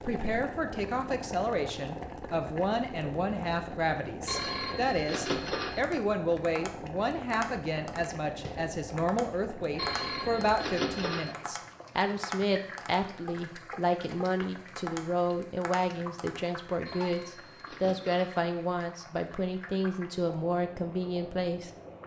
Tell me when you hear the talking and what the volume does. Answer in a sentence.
You can hear the talking from 0.0 to 21.7 s, at a steady volume.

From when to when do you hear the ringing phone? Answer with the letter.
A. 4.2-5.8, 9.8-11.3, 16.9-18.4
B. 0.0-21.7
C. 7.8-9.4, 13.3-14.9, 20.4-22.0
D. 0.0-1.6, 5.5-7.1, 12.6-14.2
A.